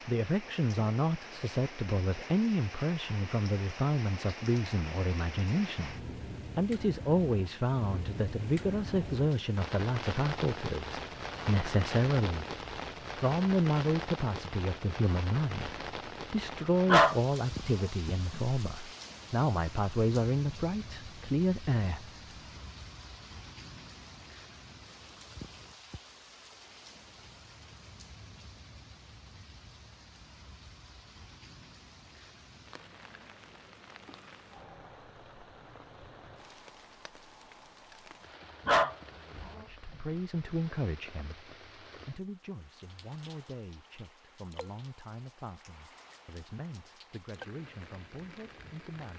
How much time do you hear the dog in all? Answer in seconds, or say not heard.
3 s.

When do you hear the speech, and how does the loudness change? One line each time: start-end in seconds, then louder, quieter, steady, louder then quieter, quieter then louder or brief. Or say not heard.
0.1-12.4 steady
13.2-22.1 steady
39.1-49.1 quieter.